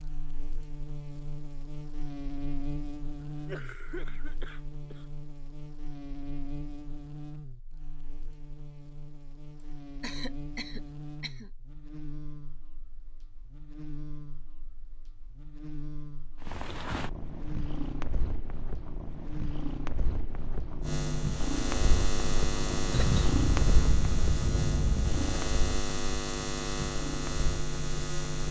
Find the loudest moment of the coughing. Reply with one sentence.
The loudest moment of the coughing is at 23 seconds.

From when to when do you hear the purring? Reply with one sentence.
You can hear the purring from 16.4 to 28.4 s.